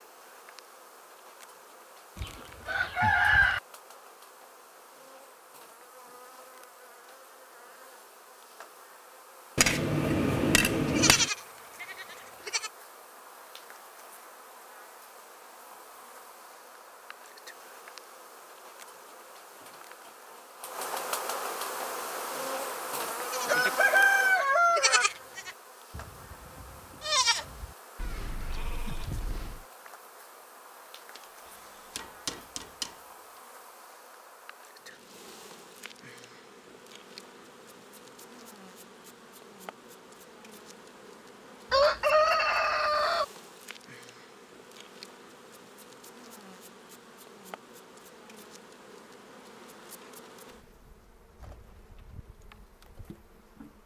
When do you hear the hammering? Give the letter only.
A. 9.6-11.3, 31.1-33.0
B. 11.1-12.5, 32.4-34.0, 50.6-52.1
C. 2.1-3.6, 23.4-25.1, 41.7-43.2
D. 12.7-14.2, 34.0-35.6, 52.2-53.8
A.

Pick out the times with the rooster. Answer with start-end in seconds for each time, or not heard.
2.1-3.6, 23.4-25.1, 41.7-43.2.